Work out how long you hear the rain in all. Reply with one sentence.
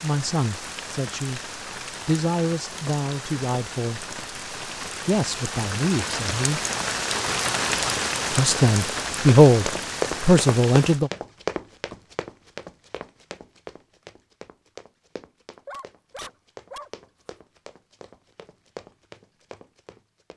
You can hear the rain for 11 seconds altogether.